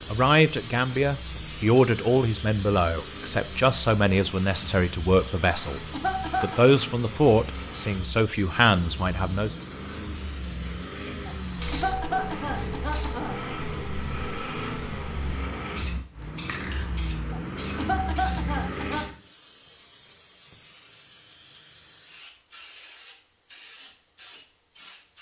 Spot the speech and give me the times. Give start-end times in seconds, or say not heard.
0.1-9.5.